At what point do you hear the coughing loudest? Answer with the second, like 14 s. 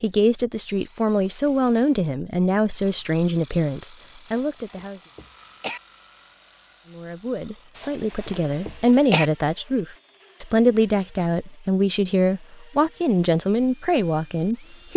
9 s.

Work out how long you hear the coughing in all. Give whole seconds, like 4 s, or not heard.
3 s.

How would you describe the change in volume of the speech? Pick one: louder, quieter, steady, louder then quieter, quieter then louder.
steady.